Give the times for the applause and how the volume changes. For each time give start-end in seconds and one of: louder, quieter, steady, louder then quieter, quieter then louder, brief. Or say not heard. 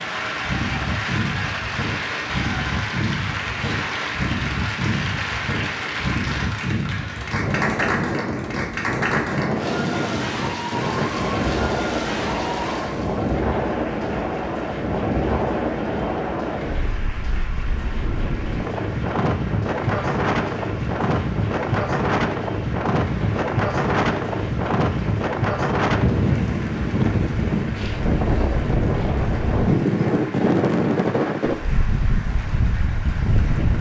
0.0-33.7 quieter.